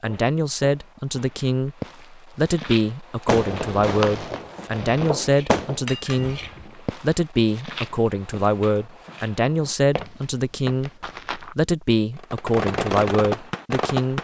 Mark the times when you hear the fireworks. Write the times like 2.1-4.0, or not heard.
3.2-5.8, 12.2-14.1.